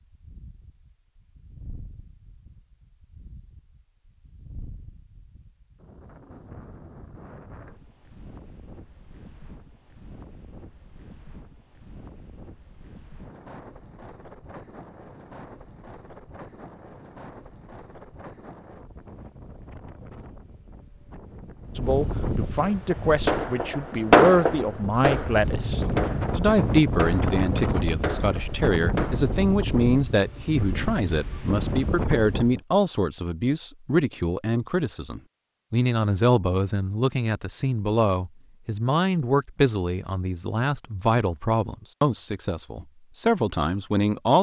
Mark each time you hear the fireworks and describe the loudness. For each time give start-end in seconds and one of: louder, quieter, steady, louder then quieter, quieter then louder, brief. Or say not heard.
22.6-29.4 quieter.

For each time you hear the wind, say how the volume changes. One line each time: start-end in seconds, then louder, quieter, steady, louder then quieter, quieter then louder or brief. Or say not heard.
0.0-32.6 louder.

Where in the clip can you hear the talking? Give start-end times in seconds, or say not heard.
21.8-44.3.